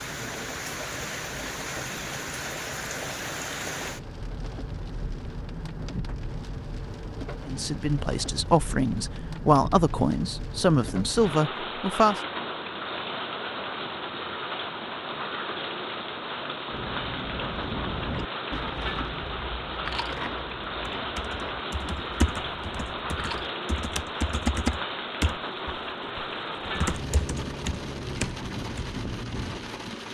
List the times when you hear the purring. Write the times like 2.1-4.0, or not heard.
not heard.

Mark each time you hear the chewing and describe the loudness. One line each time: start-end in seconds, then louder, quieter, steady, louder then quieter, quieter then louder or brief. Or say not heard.
16.7-23.5 quieter.